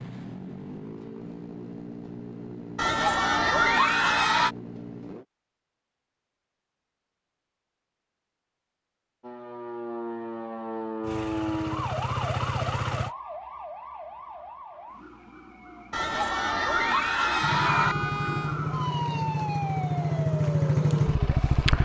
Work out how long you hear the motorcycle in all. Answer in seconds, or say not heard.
12 s.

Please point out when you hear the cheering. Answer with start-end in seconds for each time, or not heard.
2.8-4.5, 15.9-17.9.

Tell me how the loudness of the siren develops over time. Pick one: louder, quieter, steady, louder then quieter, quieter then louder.
quieter then louder.